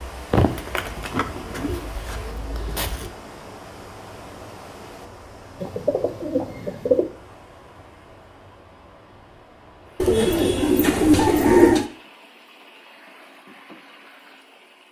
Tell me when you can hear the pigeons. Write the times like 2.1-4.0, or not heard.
0.3-3.1, 5.6-7.0, 10.0-11.8.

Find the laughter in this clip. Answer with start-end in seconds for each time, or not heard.
not heard.